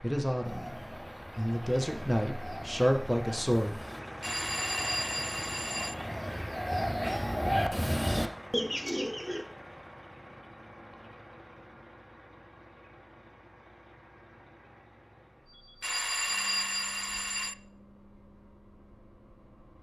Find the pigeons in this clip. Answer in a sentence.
You can hear the pigeons from 0.4 to 9.4 s.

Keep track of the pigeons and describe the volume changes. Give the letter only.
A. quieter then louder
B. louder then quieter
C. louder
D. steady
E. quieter
C.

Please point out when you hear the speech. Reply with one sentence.
The speech can be heard from 0.0 to 3.8 s.